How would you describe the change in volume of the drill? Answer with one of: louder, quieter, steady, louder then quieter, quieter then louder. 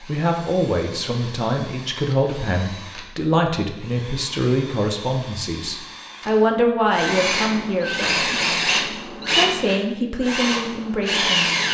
louder.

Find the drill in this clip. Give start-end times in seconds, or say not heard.
0.0-11.6.